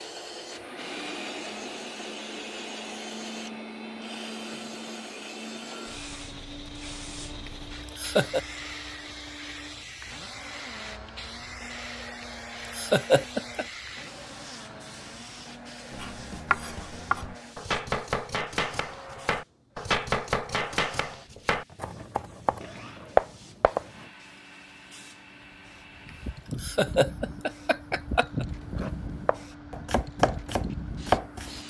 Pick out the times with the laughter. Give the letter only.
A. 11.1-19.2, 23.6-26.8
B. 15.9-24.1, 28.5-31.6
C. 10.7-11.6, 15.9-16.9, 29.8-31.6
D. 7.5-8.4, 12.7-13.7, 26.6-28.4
D.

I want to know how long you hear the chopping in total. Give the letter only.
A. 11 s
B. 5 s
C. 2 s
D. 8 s
A.